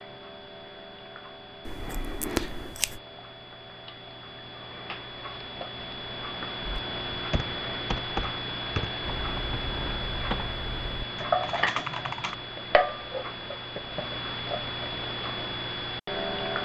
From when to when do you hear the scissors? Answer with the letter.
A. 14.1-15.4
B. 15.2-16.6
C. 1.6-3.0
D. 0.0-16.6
C.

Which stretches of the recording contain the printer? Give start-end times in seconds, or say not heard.
not heard.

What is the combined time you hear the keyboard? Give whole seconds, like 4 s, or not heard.
6 s.